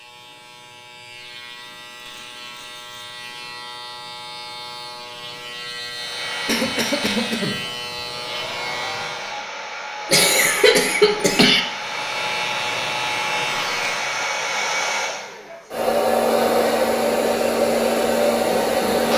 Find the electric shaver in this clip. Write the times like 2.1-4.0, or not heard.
0.0-9.4, 11.7-14.2.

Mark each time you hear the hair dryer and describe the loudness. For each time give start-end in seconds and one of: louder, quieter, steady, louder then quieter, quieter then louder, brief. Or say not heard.
5.9-19.1 louder.